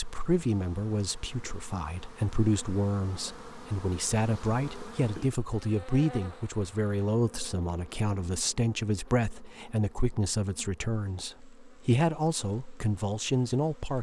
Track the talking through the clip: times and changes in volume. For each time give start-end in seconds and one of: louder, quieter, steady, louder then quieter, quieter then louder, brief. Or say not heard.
0.0-13.9 steady.